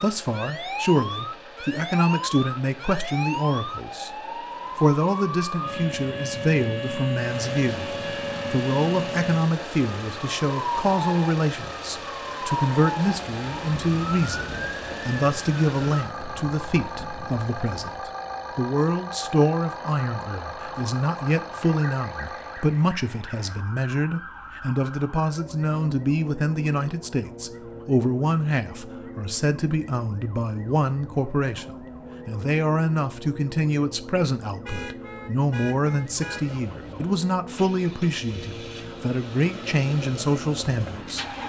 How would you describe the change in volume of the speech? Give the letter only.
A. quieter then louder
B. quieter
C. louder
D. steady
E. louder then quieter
D.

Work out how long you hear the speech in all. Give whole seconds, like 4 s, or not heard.
41 s.